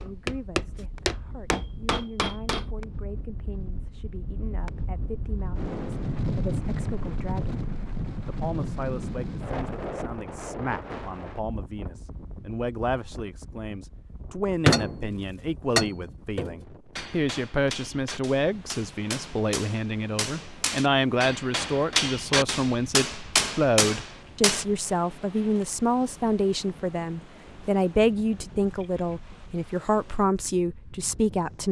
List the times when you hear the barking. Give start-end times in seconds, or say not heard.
not heard.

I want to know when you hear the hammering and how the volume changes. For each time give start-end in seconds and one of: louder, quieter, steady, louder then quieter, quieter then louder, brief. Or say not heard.
0.0-2.7 brief
14.7-24.6 quieter then louder.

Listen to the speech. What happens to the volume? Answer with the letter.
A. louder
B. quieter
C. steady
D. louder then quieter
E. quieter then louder
A.